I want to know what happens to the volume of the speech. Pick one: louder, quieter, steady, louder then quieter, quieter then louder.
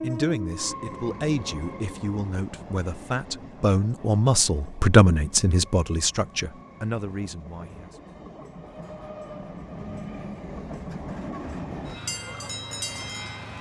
louder then quieter.